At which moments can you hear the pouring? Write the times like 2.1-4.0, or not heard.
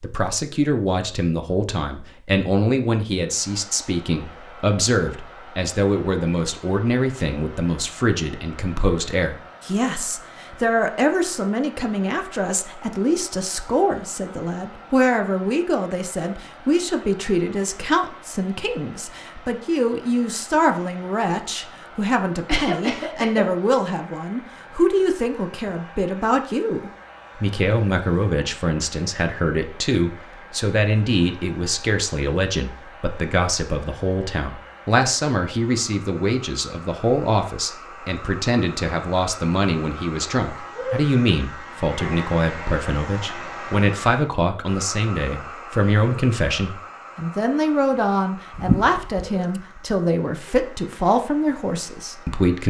48.5-49.6.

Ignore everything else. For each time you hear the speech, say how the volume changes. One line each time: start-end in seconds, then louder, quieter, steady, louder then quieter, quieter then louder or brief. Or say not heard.
0.0-52.6 steady.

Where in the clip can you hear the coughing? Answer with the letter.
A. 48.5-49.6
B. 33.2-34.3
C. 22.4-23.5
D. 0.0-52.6
C.